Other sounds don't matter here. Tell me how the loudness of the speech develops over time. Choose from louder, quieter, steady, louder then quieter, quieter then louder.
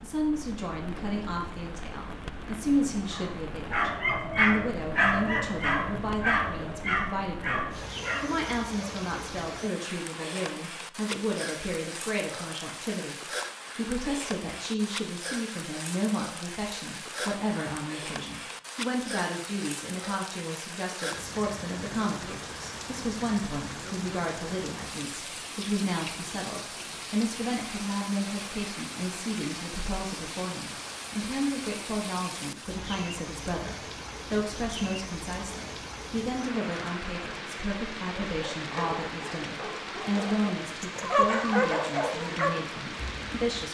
steady.